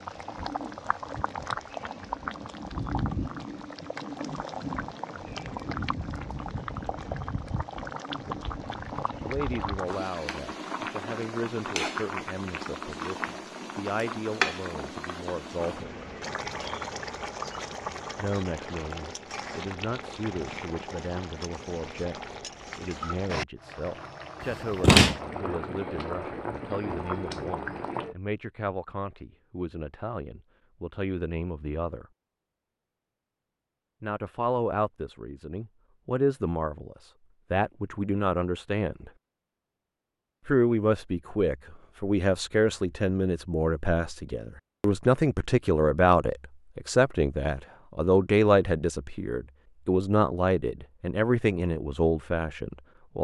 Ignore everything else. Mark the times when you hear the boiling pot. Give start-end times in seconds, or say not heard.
0.0-28.1.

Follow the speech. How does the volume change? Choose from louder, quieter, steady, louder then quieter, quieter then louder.
louder.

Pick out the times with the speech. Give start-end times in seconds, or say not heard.
9.2-15.9, 18.1-32.0, 34.0-39.1, 40.5-53.1.